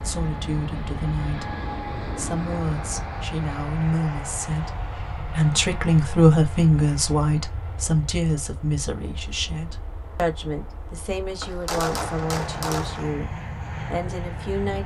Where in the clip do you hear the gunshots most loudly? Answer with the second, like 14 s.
12 s.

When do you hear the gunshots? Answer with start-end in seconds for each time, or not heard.
11.4-13.1.